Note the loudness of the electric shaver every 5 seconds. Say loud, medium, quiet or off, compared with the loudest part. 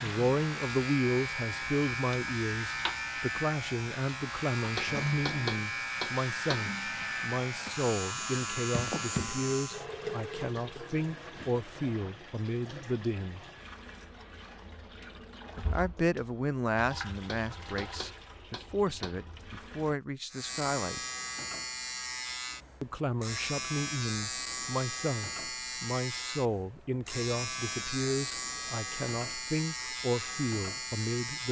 loud, loud, off, off, loud, loud, loud.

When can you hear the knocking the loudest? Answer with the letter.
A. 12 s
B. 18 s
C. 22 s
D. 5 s
D.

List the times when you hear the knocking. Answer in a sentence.
You can hear the knocking from 4.8 to 6.7 s and from 17.2 to 19.2 s.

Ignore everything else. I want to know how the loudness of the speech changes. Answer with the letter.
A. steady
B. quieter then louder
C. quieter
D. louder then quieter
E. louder
A.